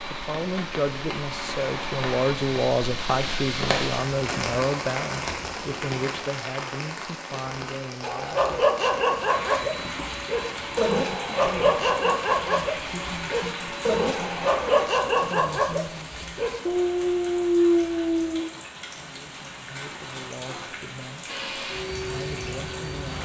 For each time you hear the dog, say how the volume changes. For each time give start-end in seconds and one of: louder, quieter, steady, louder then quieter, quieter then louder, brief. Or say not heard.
8.0-18.4 steady.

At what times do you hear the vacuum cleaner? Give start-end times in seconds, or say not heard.
0.0-2.7, 9.2-14.9, 21.2-23.1.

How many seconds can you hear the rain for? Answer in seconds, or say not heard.
23 s.